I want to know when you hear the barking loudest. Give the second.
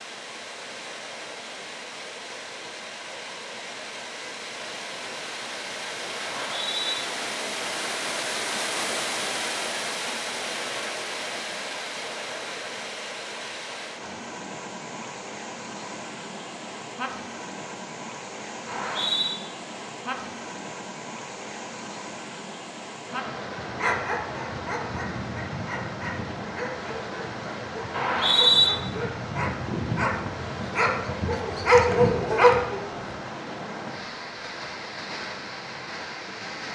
32 s.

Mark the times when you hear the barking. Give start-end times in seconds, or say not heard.
23.6-33.0.